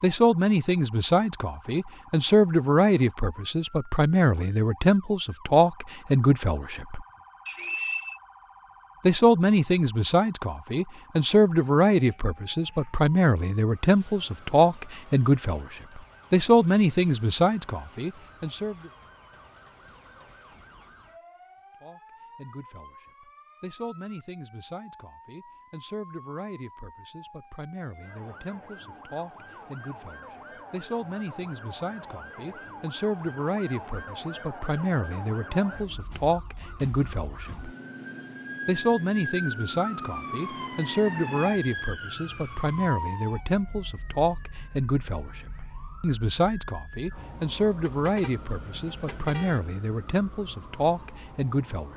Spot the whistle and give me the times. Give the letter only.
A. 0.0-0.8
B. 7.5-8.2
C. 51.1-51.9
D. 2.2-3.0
B.